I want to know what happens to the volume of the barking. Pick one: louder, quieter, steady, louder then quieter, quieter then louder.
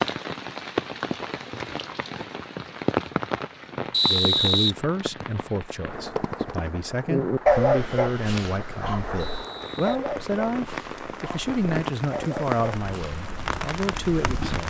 quieter then louder.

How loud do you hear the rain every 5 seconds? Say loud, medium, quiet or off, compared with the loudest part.
loud, medium, loud.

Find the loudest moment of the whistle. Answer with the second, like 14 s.
4 s.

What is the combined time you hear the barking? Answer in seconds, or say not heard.
7 s.